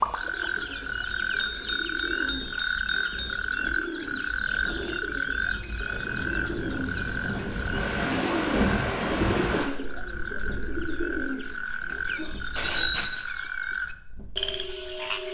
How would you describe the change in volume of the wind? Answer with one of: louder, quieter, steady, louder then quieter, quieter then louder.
louder then quieter.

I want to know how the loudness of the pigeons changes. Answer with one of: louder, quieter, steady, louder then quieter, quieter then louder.
louder.